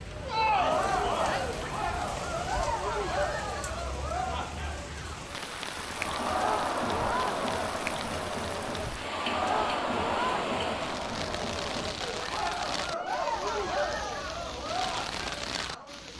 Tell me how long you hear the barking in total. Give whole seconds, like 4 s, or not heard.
not heard.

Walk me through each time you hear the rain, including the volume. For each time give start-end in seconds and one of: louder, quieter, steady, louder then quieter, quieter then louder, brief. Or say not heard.
0.0-16.1 steady.